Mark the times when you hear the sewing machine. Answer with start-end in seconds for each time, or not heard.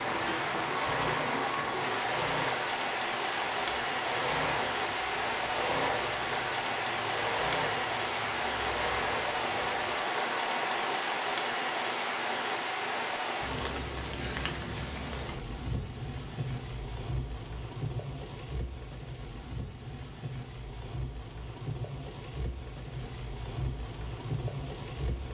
0.0-11.0.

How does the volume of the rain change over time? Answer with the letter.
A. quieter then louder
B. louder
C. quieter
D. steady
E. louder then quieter
C.